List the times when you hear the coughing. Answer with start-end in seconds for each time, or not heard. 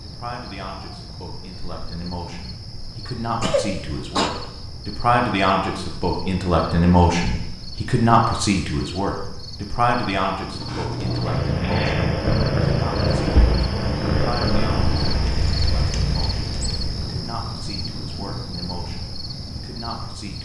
3.0-4.3.